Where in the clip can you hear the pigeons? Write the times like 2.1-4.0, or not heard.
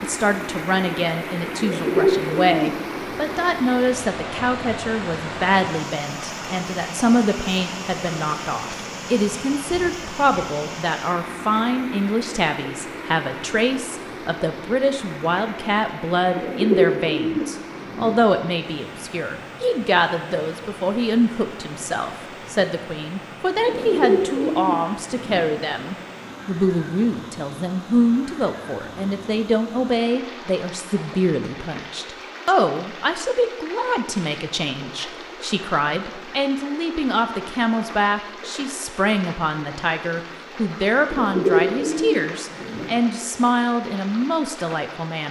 1.6-2.9, 16.4-18.1, 23.6-25.4, 41.1-42.9.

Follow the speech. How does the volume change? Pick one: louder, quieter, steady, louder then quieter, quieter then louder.
steady.